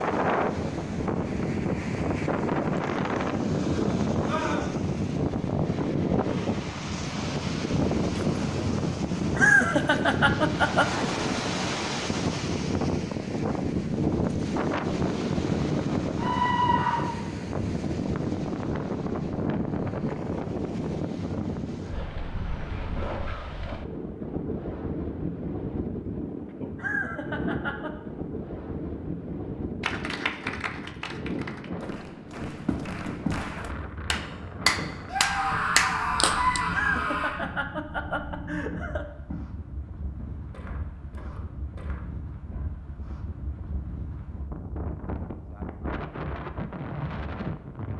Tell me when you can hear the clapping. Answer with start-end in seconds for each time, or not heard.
29.8-36.6.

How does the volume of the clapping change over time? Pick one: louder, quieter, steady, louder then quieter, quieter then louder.
quieter then louder.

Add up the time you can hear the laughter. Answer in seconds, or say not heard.
5 s.